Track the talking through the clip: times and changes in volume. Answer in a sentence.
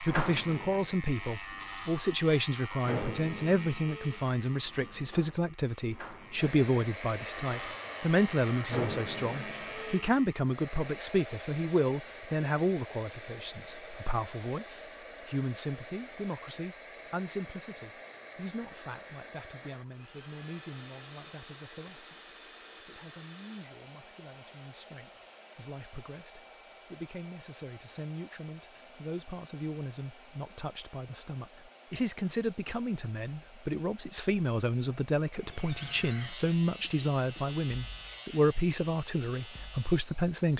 The talking can be heard from 0.0 to 40.5 s, getting quieter then louder.